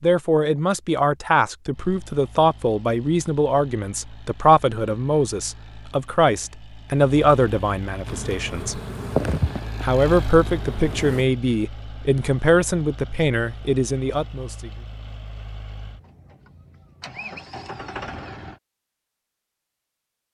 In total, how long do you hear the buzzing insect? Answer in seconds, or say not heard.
3 s.